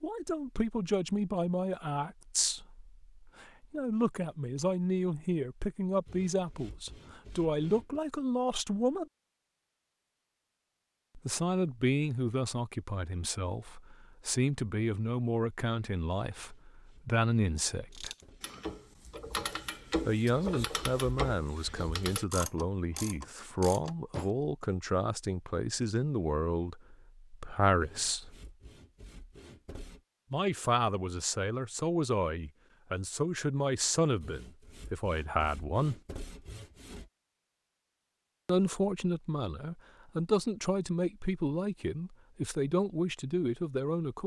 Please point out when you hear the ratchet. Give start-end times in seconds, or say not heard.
17.9-24.3.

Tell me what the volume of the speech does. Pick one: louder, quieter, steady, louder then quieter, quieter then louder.
steady.